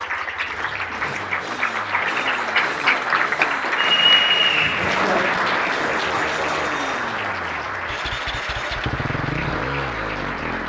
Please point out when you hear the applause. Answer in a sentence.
The applause can be heard from 0.0 to 10.6 s.